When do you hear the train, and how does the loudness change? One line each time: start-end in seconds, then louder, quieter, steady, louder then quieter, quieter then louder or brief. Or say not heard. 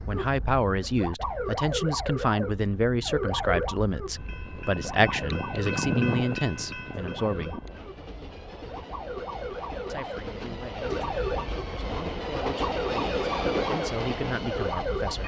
4.2-15.2 quieter then louder.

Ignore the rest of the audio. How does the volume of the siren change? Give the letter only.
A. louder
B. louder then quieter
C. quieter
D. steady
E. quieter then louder
E.